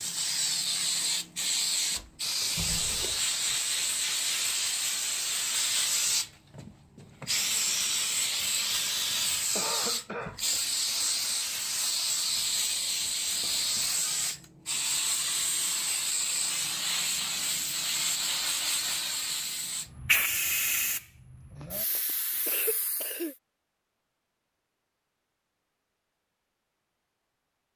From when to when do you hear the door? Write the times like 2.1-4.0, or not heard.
not heard.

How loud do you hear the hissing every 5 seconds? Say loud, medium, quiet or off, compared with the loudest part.
loud, loud, loud, loud, loud, off.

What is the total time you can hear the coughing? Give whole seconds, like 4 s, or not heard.
3 s.